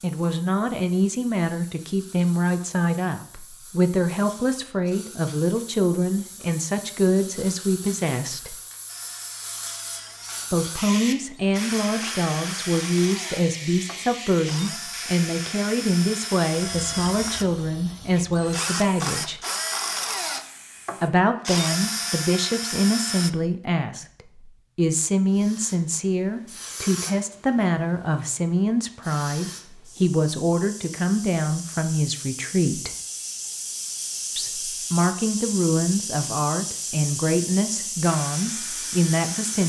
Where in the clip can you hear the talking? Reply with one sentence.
The talking can be heard from 0.0 to 8.6 s, from 10.5 to 19.4 s, from 21.0 to 24.1 s, from 24.8 to 32.9 s and from 34.4 to 39.6 s.